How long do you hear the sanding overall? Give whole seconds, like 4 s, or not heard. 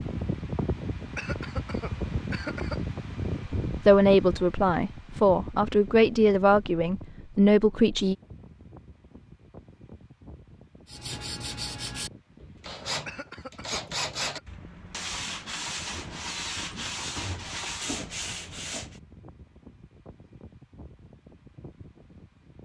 8 s.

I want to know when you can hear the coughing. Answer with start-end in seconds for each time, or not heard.
1.1-2.8, 13.1-14.4.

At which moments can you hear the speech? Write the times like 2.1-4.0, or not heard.
3.6-8.2.